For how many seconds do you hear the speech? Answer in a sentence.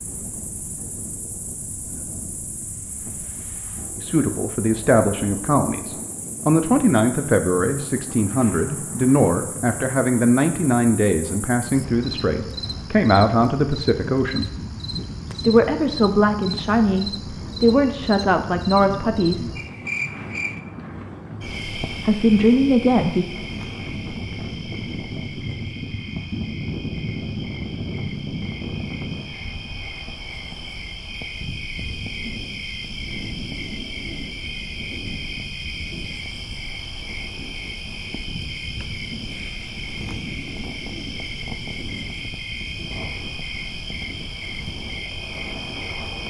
The speech can be heard for 16 seconds in total.